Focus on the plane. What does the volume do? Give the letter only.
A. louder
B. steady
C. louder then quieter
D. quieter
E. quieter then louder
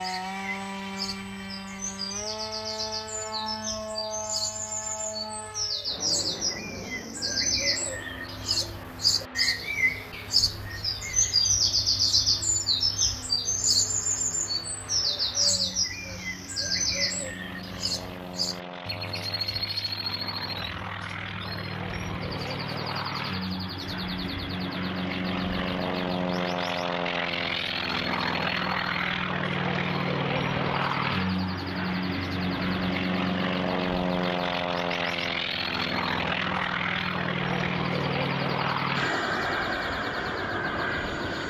E.